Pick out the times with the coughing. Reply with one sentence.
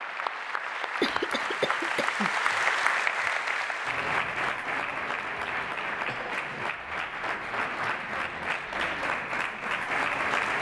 You can hear the coughing from 1.0 to 2.3 s and from 6.0 to 6.7 s.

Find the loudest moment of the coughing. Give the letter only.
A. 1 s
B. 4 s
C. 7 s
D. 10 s
A.